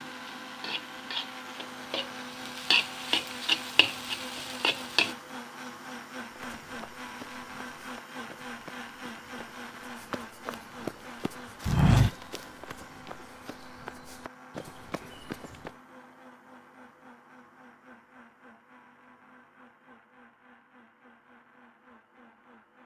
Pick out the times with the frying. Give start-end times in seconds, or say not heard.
0.0-5.2.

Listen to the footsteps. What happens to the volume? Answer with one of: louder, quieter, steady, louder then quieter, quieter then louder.
louder then quieter.